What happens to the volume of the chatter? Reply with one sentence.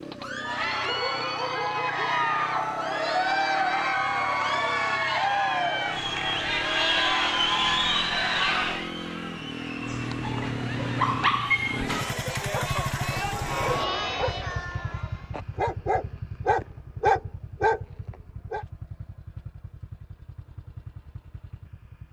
The volume of the chatter goes down, then up.